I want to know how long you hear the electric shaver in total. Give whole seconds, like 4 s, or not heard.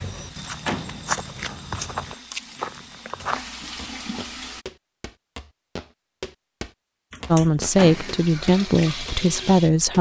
not heard.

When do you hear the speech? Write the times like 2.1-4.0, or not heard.
7.3-9.9.